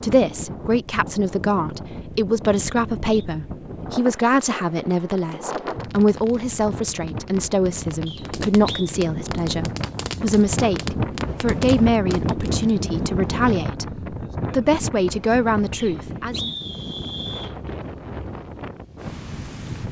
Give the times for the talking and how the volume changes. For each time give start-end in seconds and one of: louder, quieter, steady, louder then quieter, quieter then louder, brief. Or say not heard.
0.0-16.6 steady.